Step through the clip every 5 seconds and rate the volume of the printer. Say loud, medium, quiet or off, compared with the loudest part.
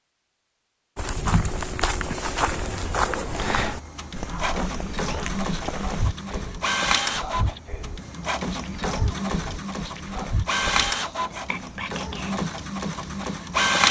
medium, loud, loud.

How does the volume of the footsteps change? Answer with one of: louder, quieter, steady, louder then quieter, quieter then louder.
quieter.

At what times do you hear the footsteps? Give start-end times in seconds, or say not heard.
0.9-6.2.